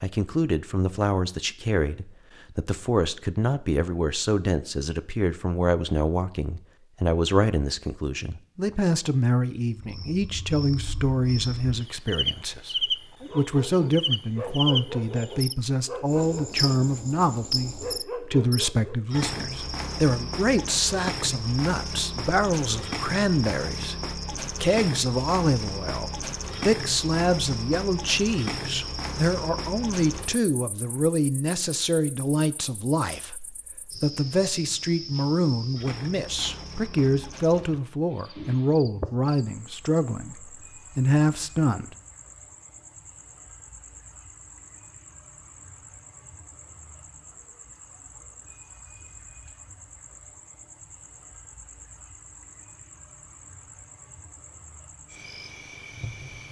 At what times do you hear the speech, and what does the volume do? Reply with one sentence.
You can hear the speech from 0.0 to 41.9 s, at a steady volume.